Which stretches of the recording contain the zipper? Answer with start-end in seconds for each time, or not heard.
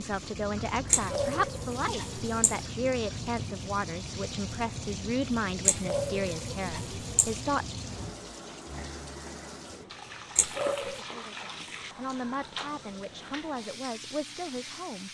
not heard.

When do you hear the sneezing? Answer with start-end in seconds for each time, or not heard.
0.9-2.6, 5.7-7.4, 10.3-11.0.